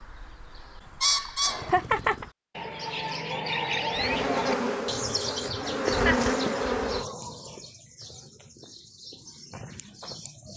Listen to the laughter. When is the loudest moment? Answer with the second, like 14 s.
2 s.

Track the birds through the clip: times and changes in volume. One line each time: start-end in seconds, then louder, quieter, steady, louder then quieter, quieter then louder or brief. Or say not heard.
0.0-10.5 quieter.